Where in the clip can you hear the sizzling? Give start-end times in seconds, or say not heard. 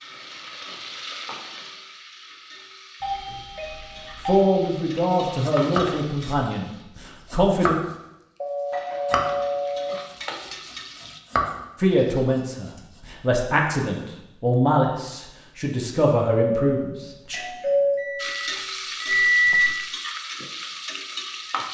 0.0-6.8, 8.7-11.2, 18.1-21.6.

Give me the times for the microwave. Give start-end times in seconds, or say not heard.
17.9-19.8.